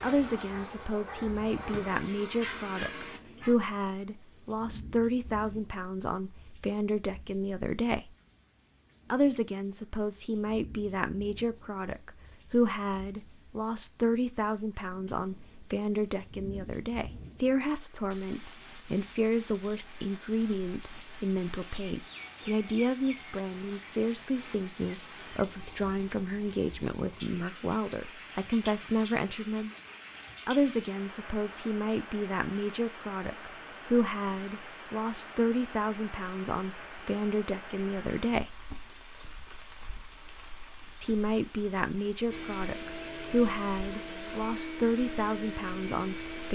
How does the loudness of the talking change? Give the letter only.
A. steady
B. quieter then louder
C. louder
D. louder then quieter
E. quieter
A.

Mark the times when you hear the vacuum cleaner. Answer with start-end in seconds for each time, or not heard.
0.0-3.2, 42.3-46.5.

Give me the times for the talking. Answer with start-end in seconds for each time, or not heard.
0.0-8.1, 9.1-29.7, 30.4-38.6, 41.0-46.5.